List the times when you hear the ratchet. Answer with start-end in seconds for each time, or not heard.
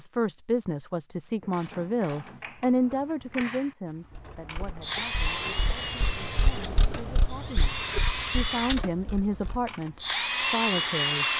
1.4-9.7.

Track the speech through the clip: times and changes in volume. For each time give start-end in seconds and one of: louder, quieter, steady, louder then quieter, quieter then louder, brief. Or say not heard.
0.0-11.2 quieter then louder.